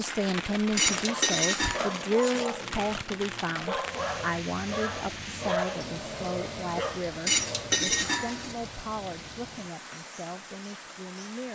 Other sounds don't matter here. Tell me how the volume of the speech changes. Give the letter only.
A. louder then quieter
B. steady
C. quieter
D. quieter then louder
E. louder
C.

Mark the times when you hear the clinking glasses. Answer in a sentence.
The clinking glasses can be heard from 0.8 to 2.5 s and from 7.2 to 8.6 s.